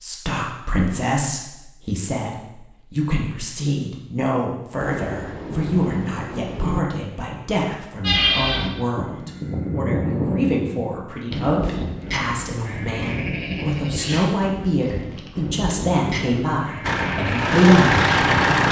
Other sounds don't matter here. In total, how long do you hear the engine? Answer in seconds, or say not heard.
2 s.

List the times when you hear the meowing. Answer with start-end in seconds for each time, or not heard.
not heard.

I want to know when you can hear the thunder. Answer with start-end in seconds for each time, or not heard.
4.8-6.8.